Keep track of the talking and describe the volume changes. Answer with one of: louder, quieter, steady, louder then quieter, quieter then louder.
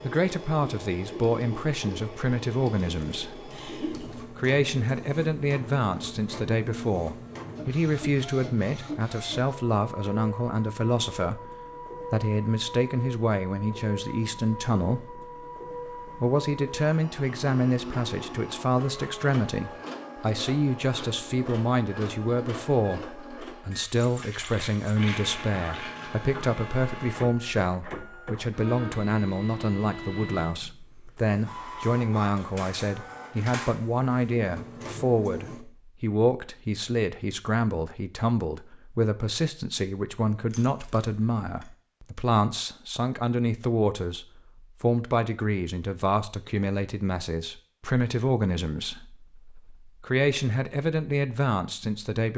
steady.